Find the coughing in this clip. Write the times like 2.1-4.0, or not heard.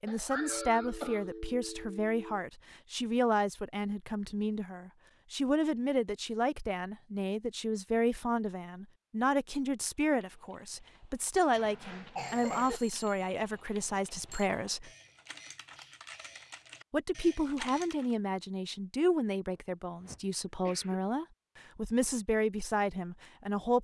0.1-1.2, 11.6-12.8, 19.5-21.1.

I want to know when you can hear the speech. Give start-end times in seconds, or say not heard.
0.0-14.9, 16.9-23.7.